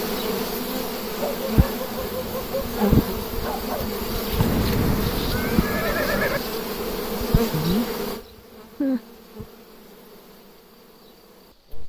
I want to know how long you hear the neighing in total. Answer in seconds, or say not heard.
2 s.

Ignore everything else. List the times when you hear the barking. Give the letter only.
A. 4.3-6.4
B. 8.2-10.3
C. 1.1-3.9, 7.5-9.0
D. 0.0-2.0
C.